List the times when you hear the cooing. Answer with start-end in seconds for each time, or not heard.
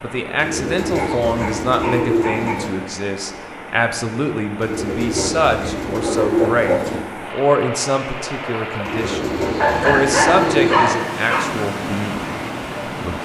0.3-2.8, 4.6-7.0, 8.8-10.8.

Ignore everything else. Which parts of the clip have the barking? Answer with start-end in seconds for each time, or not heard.
0.8-2.5, 6.0-6.9, 9.6-11.4.